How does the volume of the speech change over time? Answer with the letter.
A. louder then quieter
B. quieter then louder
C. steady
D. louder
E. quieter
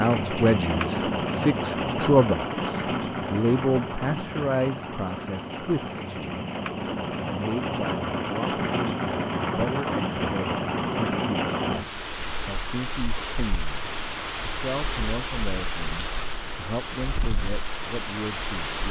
E.